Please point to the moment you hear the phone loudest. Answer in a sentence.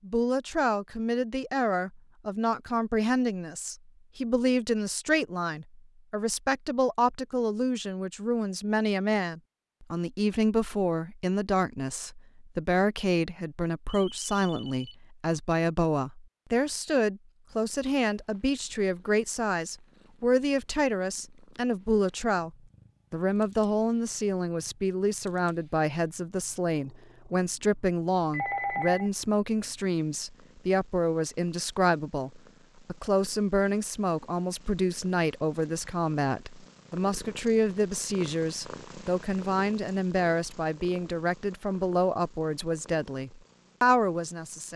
The volume of the phone peaks at 29 seconds.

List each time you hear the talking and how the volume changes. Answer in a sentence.
The talking can be heard from 0.1 to 44.7 s, at a steady volume.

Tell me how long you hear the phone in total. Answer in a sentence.
You can hear the phone for 2 seconds altogether.